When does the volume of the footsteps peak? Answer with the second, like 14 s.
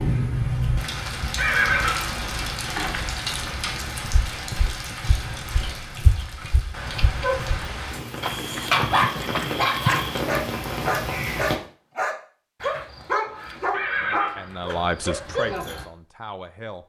10 s.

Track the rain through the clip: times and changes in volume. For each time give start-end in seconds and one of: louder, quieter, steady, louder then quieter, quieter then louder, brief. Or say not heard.
0.0-11.6 quieter then louder.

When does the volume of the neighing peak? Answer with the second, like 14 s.
2 s.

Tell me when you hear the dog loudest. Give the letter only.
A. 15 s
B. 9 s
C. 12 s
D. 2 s
B.